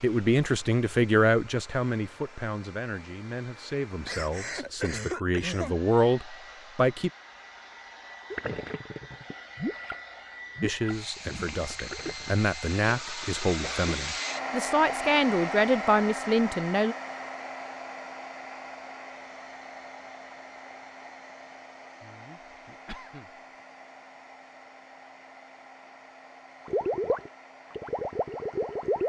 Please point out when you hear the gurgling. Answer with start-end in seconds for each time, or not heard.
8.3-12.3, 26.6-29.0.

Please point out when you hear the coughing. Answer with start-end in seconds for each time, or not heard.
4.0-5.8, 12.8-13.9, 22.0-23.4.